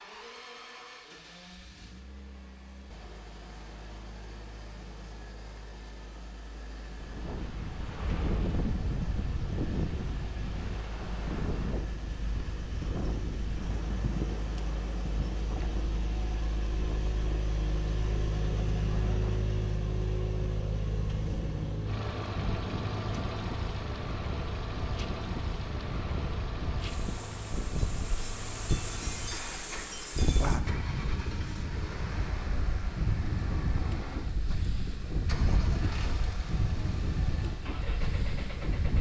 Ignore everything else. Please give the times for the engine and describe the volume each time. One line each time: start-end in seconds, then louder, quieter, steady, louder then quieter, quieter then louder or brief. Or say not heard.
0.0-38.9 louder then quieter.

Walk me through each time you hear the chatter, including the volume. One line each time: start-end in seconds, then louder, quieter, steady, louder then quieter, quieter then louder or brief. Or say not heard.
not heard.